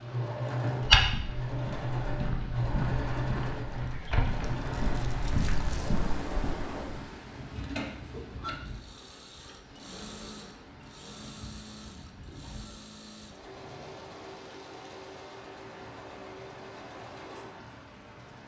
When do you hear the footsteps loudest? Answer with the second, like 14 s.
1 s.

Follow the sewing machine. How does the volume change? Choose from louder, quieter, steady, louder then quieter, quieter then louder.
quieter.